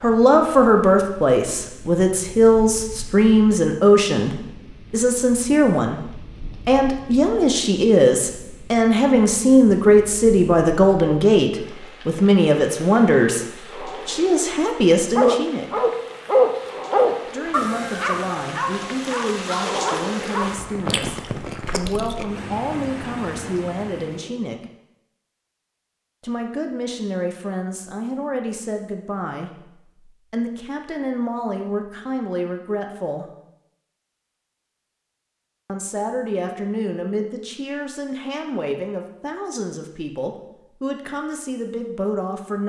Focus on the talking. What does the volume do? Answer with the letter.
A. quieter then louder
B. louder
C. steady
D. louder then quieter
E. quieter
E.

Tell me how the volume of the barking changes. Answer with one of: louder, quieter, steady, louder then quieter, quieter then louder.
quieter.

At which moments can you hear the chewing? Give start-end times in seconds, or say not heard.
20.9-22.4.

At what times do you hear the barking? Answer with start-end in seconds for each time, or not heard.
15.2-20.6.